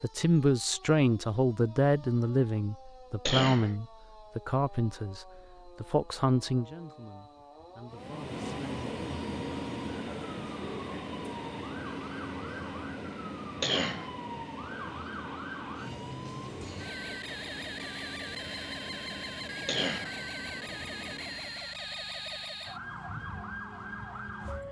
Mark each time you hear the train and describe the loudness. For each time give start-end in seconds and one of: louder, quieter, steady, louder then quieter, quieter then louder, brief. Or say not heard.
7.9-21.7 quieter.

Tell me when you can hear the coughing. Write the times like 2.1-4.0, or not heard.
3.2-3.8, 13.6-14.1, 19.6-20.1.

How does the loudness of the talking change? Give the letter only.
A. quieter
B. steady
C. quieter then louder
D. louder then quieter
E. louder
A.